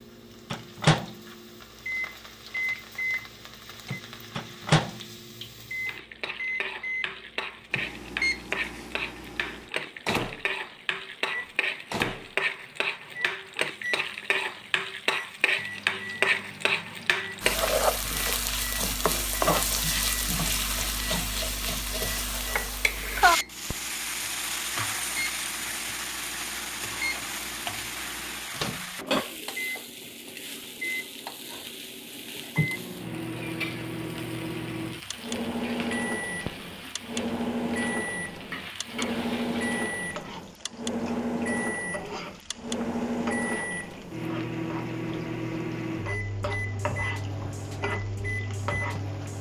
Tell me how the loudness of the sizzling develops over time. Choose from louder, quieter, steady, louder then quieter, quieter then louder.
louder then quieter.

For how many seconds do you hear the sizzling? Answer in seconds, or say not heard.
49 s.